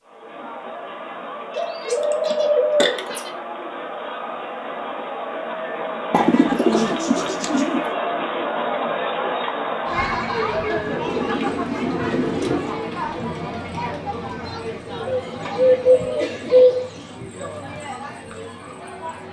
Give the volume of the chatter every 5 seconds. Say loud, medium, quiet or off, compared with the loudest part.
medium, loud, loud, medium.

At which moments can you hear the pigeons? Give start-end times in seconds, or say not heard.
1.6-3.3, 6.1-7.8, 11.0-12.7, 15.1-16.9.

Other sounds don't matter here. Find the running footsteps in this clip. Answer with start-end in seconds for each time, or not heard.
not heard.